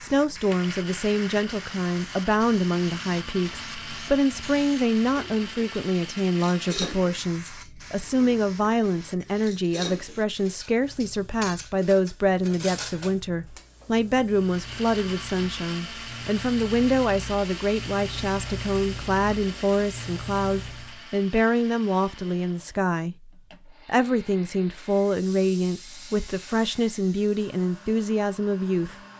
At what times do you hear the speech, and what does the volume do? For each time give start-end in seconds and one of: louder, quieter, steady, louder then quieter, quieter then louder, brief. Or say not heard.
0.0-28.9 steady.